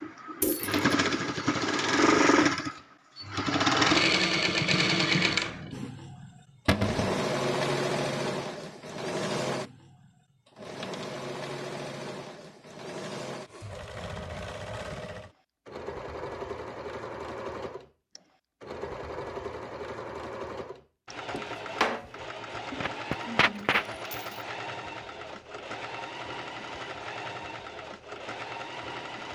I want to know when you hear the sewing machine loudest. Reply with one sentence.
The loudest moment of the sewing machine is at 4 seconds.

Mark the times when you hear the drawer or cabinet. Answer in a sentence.
The drawer or cabinet can be heard from 6.7 to 7.1 s and from 21.3 to 22.1 s.